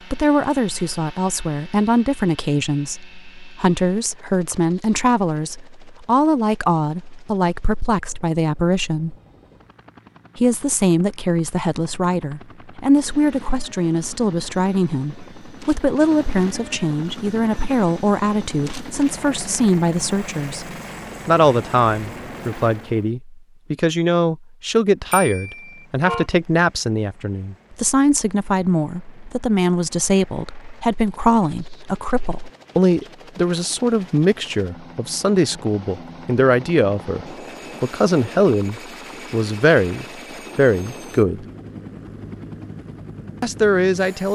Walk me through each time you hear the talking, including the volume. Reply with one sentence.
The talking can be heard from 0.1 to 9.2 s, at a steady volume; from 10.3 to 20.6 s, at a steady volume; from 21.2 to 41.5 s, at a steady volume; and briefly from 43.4 to 44.3 s.